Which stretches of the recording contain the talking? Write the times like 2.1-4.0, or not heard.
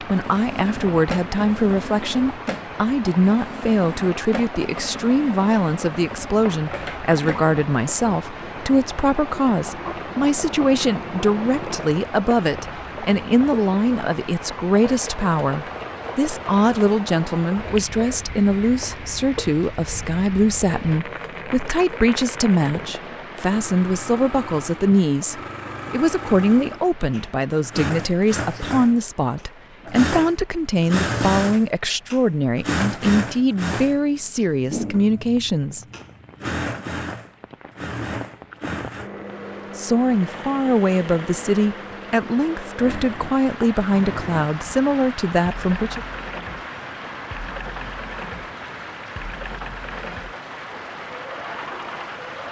0.0-35.9, 39.8-46.0.